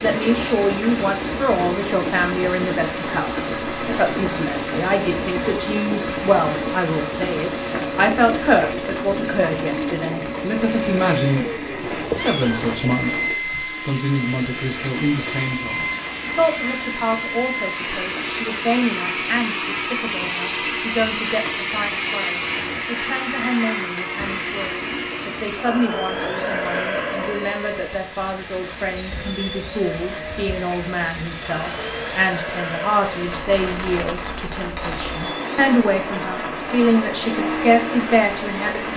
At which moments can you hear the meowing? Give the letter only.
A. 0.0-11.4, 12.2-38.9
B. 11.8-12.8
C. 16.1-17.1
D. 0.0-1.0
B.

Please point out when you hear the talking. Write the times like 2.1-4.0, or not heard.
0.0-11.4, 12.2-38.9.